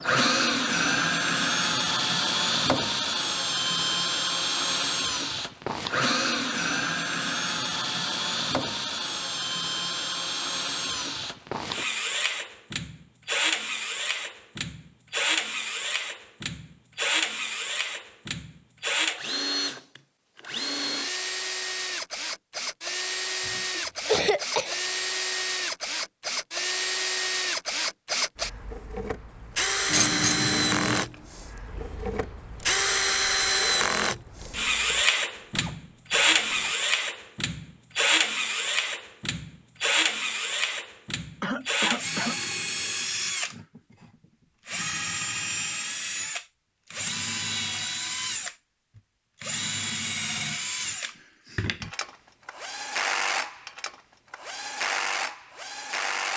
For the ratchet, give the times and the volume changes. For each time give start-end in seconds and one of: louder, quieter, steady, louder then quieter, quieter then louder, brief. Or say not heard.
29.9-36.8 quieter then louder.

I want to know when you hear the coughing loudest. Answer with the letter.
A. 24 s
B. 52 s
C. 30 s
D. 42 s
A.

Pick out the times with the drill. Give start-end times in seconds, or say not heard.
0.0-56.3.